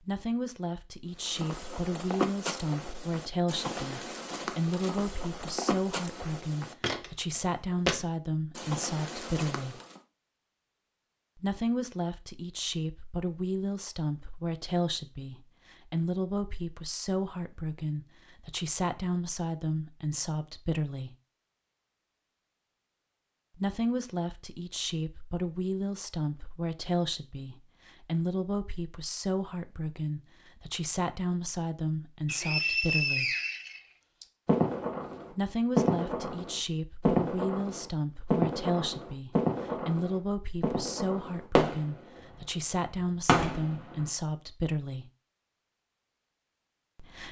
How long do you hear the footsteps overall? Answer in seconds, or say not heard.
9 s.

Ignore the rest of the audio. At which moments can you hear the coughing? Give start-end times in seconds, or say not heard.
not heard.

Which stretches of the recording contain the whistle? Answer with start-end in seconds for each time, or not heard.
32.2-34.2.